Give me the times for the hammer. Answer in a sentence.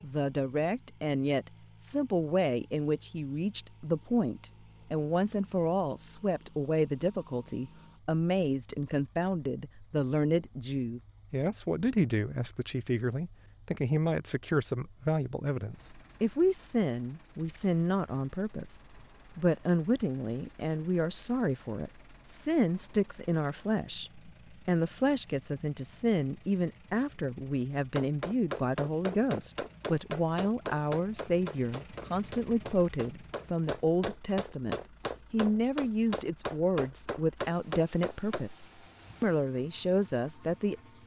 The hammer can be heard from 27.7 to 38.5 s.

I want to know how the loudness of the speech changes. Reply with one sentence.
The volume of the speech stays about the same.